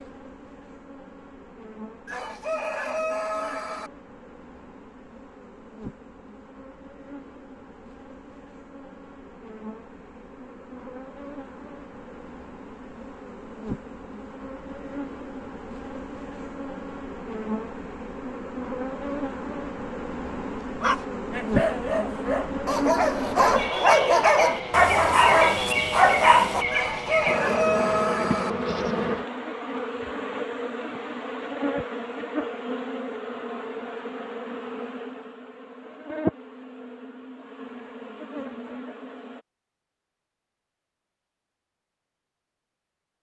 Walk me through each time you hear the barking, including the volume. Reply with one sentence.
The barking can be heard from 20.8 to 26.6 s, getting louder.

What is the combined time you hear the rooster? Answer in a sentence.
You can hear the rooster for 4 seconds altogether.